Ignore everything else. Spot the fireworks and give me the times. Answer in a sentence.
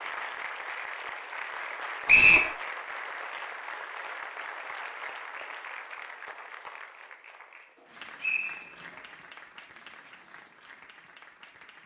You can't hear the fireworks here.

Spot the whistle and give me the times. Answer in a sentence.
The whistle can be heard from 2.0 to 2.5 s and from 8.2 to 8.7 s.